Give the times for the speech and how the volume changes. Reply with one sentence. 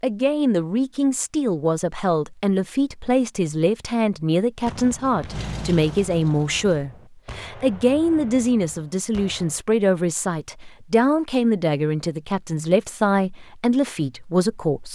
You can hear the speech from 0.0 to 14.9 s, at a steady volume.